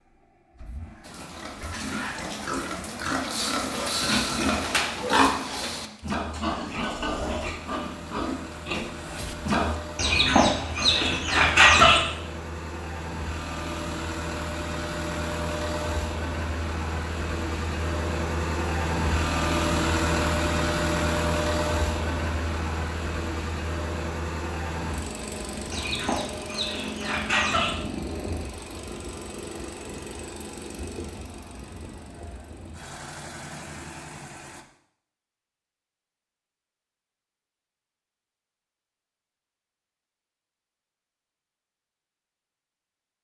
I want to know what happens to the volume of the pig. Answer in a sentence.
The loudness of the pig goes up, then down.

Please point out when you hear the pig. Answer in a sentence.
The pig can be heard from 1.0 to 9.8 s.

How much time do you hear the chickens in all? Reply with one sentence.
You can hear the chickens for 4 seconds altogether.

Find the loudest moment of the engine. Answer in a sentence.
The volume of the engine peaks at 20 seconds.